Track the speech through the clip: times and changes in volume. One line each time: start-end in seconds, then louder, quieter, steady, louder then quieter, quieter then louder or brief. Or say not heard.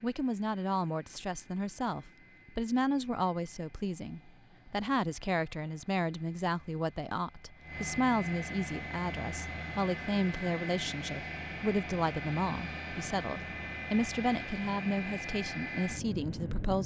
0.0-16.8 steady.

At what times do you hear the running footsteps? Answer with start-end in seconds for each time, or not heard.
not heard.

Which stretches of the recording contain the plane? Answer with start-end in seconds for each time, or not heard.
0.0-16.8.